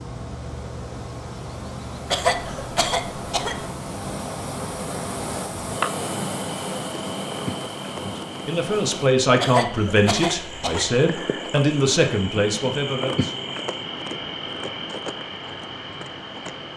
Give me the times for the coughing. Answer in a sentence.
The coughing can be heard from 2.1 to 3.6 s and from 9.4 to 10.9 s.